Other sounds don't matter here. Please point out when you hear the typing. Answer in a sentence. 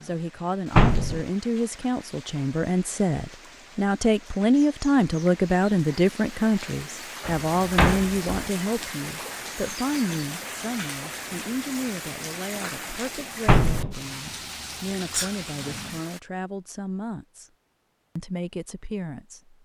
You can't hear the typing here.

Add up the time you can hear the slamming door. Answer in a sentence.
You can hear the slamming door for 2 seconds altogether.